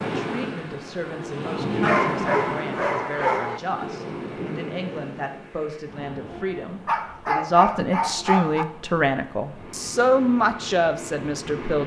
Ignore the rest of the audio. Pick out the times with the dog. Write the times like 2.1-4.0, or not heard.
1.8-3.6, 6.8-8.7.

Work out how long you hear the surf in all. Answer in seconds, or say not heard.
12 s.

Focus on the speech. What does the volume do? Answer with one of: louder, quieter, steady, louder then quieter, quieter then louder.
louder.